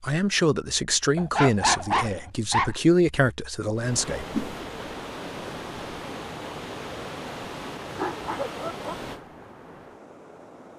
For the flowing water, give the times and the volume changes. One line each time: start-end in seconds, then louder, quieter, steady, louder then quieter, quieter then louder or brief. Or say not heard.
3.8-10.7 quieter.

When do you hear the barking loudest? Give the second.
2 s.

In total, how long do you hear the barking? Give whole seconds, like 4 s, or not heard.
3 s.